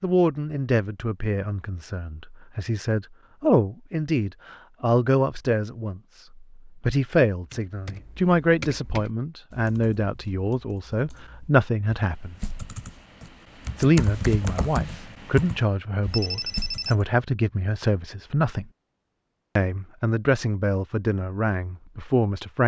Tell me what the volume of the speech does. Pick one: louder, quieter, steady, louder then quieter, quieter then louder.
steady.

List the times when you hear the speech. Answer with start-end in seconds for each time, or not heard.
0.0-12.3, 13.8-18.6, 19.6-22.6.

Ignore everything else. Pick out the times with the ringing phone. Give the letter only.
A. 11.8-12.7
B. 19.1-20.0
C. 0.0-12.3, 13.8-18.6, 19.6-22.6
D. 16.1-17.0
D.